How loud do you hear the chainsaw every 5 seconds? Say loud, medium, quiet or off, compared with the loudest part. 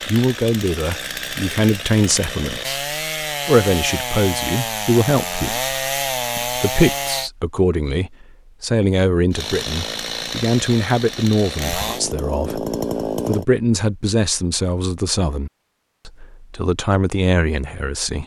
loud, loud, loud, off.